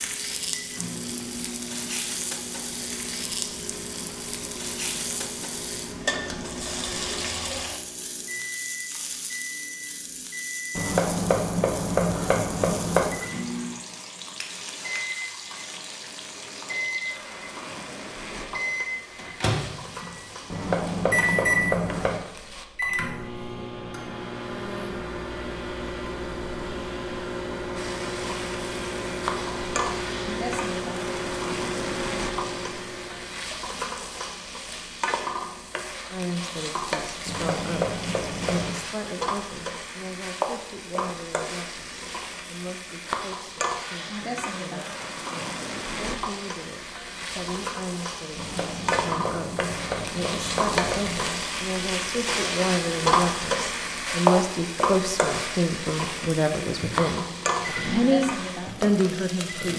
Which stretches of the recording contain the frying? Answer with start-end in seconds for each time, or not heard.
0.0-22.6, 27.8-59.7.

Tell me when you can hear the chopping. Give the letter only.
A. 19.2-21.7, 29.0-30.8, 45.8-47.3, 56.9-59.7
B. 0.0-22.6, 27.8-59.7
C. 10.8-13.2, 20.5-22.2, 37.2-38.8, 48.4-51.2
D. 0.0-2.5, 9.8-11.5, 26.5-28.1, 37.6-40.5
C.